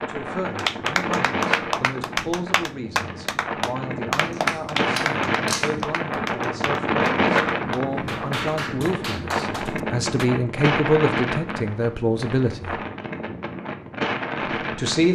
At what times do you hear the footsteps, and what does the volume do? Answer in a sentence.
The footsteps can't be heard in this clip.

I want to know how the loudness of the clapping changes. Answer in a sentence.
The loudness of the clapping goes down.